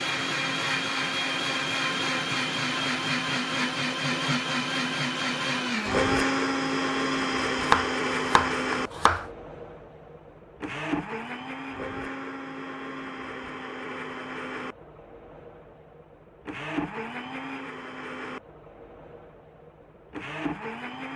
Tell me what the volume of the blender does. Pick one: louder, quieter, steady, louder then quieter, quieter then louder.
quieter.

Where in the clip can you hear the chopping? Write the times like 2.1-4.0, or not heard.
7.6-9.2.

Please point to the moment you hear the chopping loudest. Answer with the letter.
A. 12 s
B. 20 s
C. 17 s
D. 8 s
D.